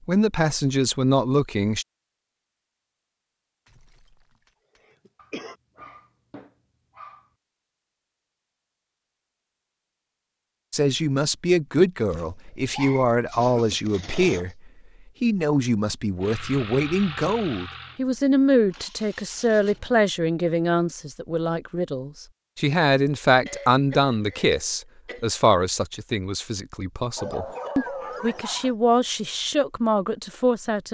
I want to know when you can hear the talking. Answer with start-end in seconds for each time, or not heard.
0.1-1.9, 10.7-14.6, 15.2-30.8.